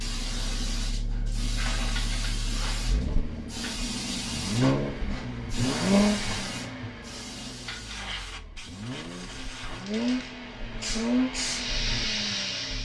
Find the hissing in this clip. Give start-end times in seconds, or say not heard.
0.0-12.7.